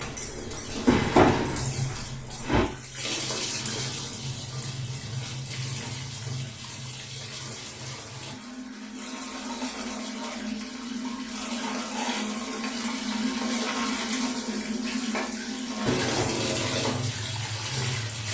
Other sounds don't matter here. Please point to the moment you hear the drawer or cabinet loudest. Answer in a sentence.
The volume of the drawer or cabinet peaks at 1 second.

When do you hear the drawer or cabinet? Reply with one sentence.
You can hear the drawer or cabinet from 0.8 to 2.6 s and from 15.9 to 16.4 s.